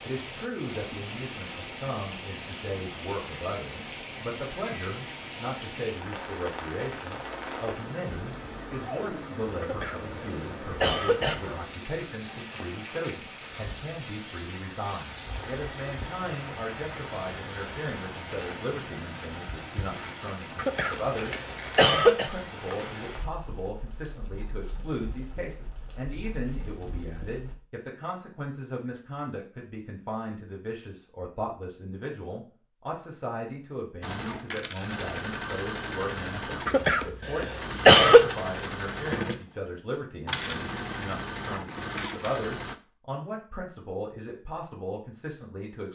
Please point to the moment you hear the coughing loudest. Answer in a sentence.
The volume of the coughing peaks at 38 seconds.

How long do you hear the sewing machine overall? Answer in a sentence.
The sewing machine can be heard for 9 seconds in total.